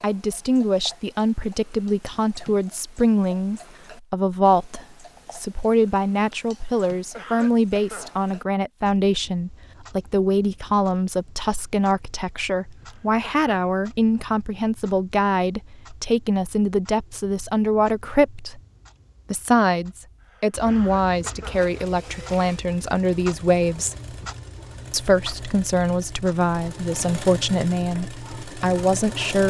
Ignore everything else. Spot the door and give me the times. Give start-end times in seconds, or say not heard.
not heard.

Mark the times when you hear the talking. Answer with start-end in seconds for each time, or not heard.
0.0-18.6, 19.3-23.9, 24.9-29.4.